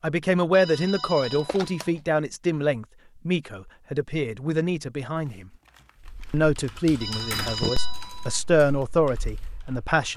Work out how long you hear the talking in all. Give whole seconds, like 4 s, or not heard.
9 s.